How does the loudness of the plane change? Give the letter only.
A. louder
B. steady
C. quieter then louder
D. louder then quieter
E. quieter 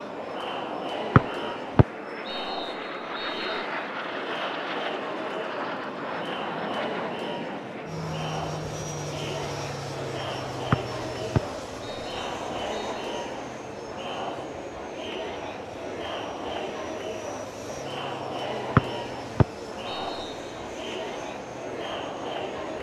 E.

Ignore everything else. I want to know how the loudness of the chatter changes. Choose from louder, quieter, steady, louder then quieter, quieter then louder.
steady.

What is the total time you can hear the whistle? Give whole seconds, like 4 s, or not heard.
7 s.